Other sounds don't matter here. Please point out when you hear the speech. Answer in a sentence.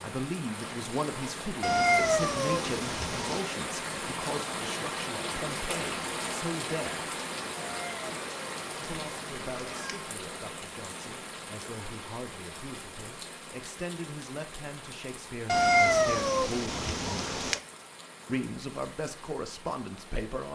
The speech can be heard from 0.0 to 7.0 s, from 8.8 to 17.5 s and from 18.2 to 20.5 s.